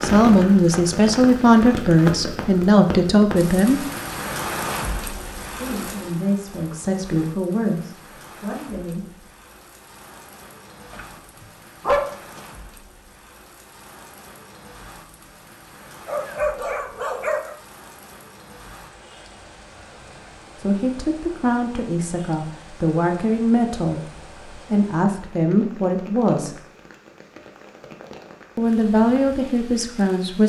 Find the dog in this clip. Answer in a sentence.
The dog can be heard from 10.9 to 12.4 s and from 16.1 to 17.6 s.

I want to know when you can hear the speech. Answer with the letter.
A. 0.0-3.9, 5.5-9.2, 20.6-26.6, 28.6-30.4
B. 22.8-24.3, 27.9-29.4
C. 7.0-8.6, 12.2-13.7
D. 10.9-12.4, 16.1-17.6
A.